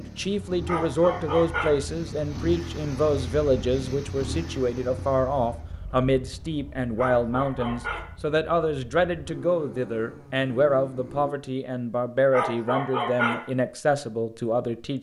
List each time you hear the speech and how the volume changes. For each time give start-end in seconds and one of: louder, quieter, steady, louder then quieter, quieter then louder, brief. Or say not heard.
0.0-14.9 steady.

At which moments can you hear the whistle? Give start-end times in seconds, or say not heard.
not heard.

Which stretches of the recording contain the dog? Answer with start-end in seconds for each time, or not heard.
0.7-1.8, 7.0-8.1, 12.3-13.4.